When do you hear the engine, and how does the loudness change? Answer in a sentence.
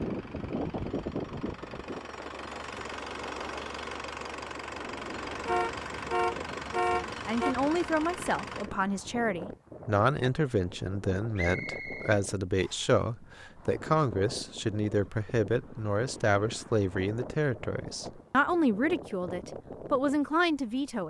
The engine can be heard from 0.0 to 8.7 s, getting louder.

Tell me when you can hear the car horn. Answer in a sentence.
The car horn can be heard from 5.5 to 7.5 s.